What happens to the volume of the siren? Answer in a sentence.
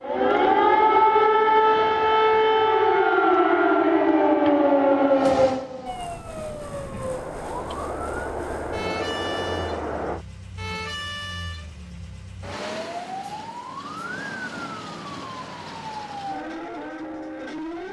The loudness of the siren goes down.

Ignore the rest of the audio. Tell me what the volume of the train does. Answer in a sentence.
The loudness of the train goes up.